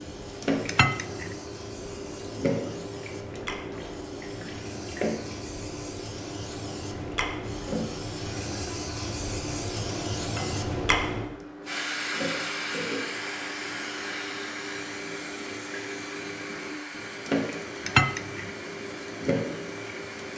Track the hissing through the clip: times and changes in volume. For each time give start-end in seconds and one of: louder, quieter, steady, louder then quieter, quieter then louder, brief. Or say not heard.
0.0-20.3 louder then quieter.